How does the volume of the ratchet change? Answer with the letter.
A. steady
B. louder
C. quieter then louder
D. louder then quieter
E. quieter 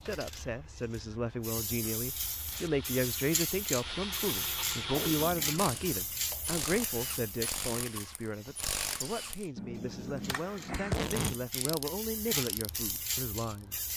A.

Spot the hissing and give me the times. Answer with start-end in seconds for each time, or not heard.
0.0-13.9.